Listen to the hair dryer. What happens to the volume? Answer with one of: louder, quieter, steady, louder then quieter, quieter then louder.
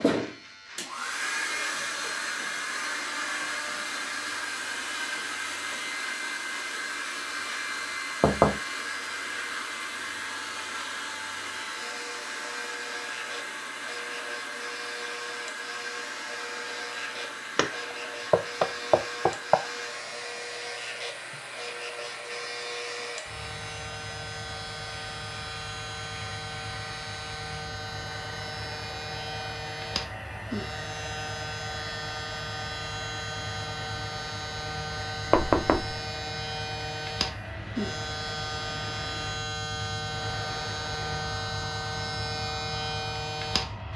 quieter.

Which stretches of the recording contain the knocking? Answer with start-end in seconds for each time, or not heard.
8.2-8.6, 17.6-19.6, 35.3-36.0.